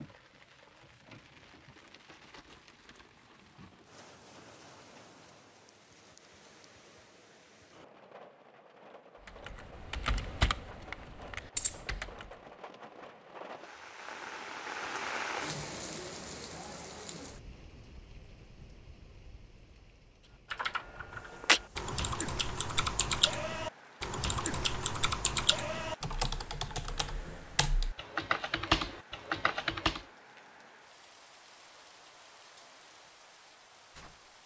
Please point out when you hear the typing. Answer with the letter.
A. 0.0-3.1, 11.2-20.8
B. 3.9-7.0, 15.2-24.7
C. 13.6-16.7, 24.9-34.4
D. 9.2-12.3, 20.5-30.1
D.